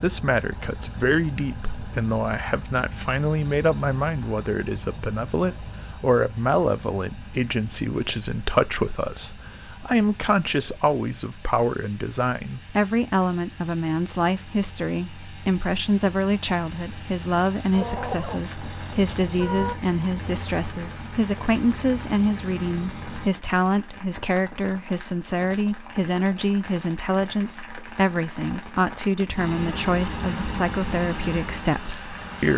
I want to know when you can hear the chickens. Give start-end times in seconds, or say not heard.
17.7-19.8.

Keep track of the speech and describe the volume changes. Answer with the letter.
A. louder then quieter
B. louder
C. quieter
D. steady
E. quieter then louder
D.